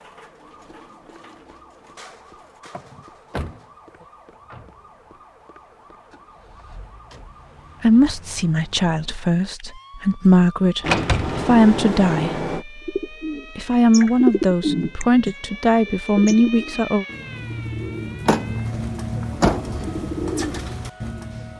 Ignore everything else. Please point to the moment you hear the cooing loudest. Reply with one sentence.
The volume of the cooing peaks at 14 seconds.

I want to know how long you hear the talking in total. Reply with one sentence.
You can hear the talking for 9 seconds altogether.